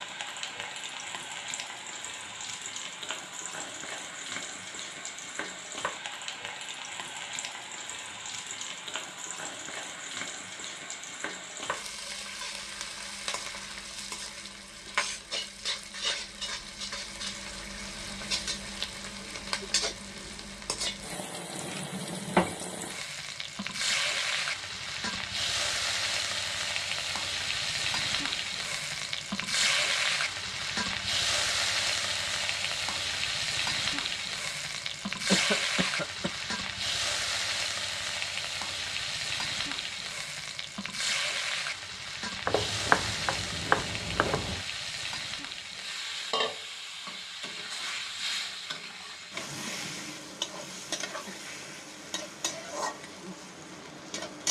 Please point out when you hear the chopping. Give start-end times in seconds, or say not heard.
42.5-44.6.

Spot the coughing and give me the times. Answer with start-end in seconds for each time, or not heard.
35.2-36.4.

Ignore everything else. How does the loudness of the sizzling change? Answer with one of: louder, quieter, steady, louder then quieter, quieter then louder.
louder then quieter.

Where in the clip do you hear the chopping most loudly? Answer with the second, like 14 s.
43 s.